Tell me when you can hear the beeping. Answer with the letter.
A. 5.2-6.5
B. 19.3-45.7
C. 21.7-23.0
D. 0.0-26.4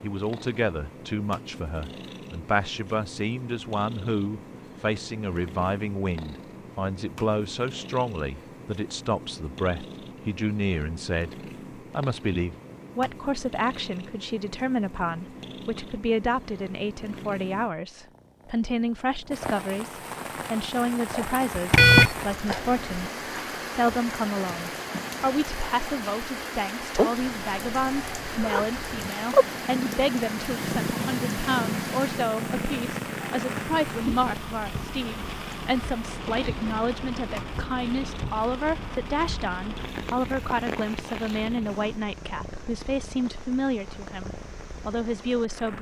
C.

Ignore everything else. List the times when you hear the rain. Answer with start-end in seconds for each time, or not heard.
19.3-45.7.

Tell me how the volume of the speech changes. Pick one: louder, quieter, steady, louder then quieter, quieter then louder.
steady.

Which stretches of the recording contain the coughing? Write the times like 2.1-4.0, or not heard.
not heard.